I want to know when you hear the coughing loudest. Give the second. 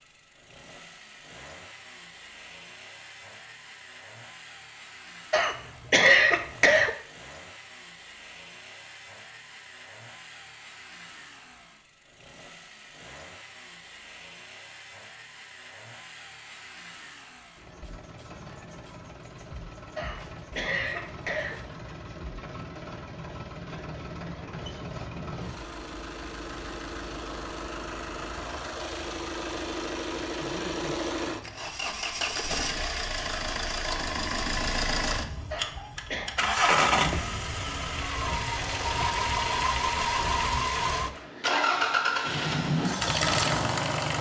6 s.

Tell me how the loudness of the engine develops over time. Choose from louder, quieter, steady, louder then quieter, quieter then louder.
louder.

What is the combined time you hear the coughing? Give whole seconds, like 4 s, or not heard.
4 s.